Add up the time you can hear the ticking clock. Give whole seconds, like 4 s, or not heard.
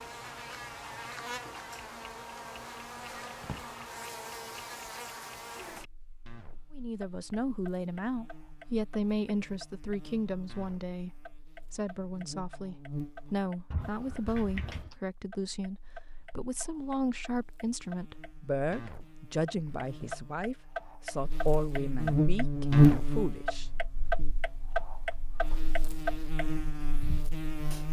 28 s.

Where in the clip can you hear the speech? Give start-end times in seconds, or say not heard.
6.7-24.3.